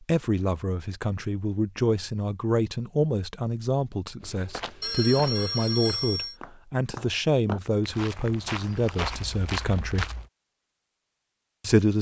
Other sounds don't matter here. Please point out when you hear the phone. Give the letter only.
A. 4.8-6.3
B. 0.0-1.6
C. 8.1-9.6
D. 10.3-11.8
A.